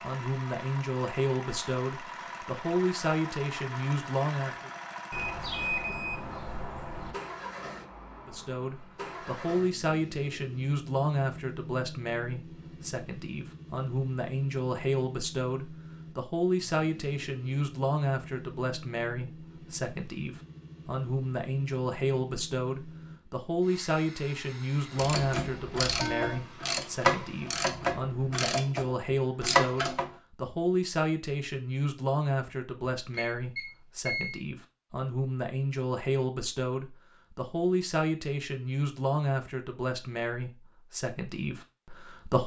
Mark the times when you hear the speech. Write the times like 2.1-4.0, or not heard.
0.0-4.7, 8.2-42.4.